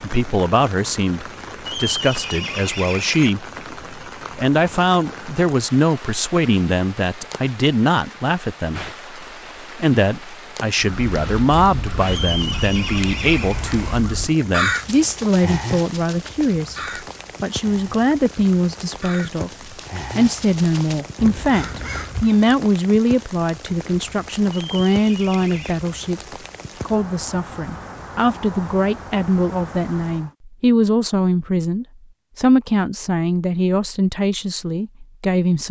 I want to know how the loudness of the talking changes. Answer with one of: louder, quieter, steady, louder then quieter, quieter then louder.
steady.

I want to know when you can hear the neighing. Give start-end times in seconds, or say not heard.
1.6-3.3, 12.1-13.6, 24.5-25.8.